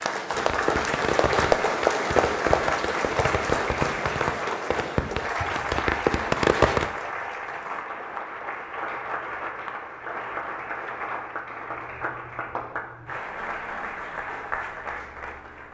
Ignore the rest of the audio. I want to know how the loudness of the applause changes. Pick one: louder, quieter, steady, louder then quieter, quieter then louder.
quieter.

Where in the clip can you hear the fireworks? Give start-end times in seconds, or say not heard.
0.3-6.9.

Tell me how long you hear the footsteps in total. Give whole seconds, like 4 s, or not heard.
not heard.